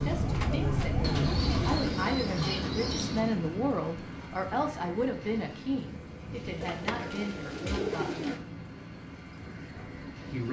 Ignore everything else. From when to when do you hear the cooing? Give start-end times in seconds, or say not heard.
1.0-3.4, 6.6-8.4.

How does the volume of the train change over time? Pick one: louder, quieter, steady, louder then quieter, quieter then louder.
quieter.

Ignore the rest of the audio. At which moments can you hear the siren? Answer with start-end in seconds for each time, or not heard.
0.0-1.8.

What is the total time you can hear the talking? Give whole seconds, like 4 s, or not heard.
9 s.